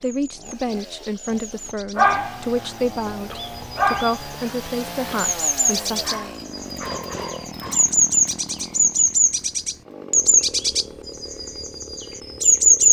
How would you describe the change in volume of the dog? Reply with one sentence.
The volume of the dog goes down, then up.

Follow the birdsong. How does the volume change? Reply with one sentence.
The volume of the birdsong goes up.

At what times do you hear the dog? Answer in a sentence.
You can hear the dog from 1.6 to 7.8 s.